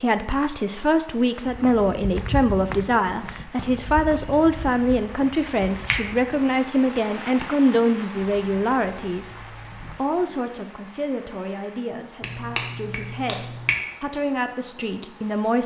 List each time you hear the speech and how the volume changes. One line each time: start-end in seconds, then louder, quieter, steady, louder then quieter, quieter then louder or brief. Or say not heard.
0.0-15.6 quieter.